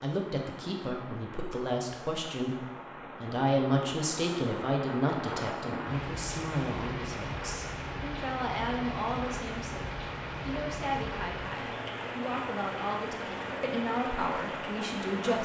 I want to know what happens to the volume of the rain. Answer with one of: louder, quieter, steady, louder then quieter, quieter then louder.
louder.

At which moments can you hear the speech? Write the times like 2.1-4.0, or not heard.
0.0-15.4.